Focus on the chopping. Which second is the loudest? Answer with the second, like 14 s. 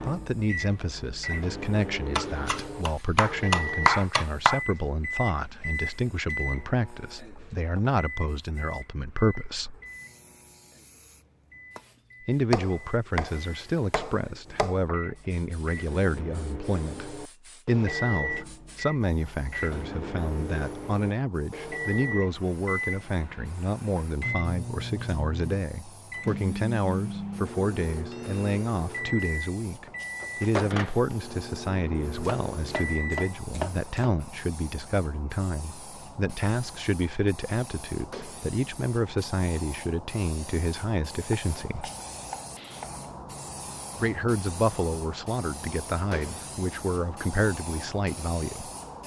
4 s.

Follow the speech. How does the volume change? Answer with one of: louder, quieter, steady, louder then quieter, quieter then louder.
steady.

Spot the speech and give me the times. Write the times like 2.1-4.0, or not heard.
0.0-9.8, 12.2-41.9, 44.0-48.7.